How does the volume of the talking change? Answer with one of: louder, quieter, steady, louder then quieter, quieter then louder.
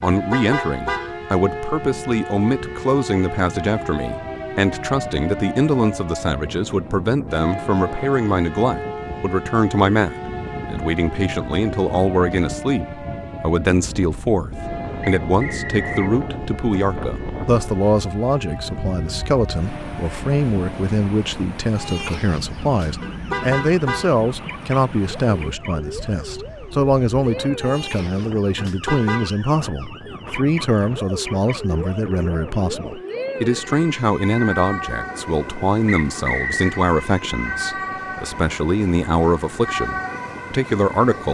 steady.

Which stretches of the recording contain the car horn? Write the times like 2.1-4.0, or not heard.
0.0-1.1, 23.0-24.2, 28.6-29.4.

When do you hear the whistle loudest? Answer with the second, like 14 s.
36 s.